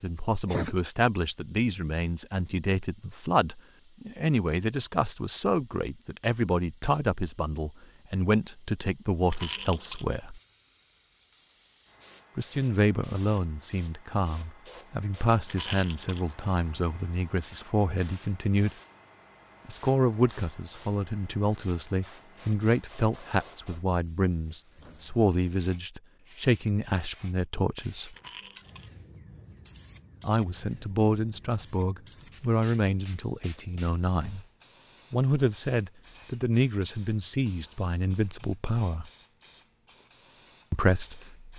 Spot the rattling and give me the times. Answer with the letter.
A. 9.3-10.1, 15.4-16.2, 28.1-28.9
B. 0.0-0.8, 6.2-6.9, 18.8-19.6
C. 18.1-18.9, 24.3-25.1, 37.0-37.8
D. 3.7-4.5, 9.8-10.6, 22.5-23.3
A.